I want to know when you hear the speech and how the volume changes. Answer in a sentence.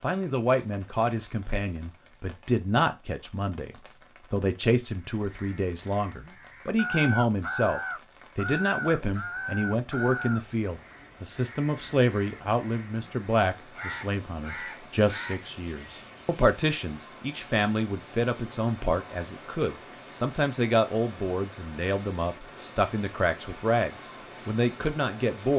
You can hear the speech from 0.0 to 25.5 s, at a steady volume.